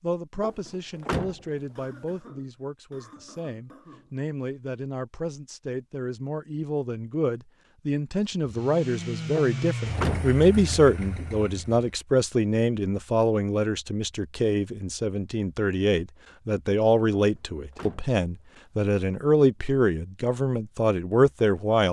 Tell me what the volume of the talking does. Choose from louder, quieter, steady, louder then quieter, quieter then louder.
louder.